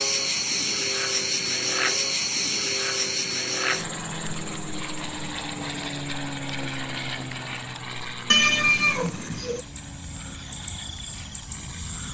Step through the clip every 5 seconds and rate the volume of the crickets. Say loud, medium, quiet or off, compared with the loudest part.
loud, quiet, medium.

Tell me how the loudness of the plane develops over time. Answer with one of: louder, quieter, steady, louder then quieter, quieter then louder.
quieter.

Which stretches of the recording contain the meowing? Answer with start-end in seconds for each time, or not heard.
8.3-9.6.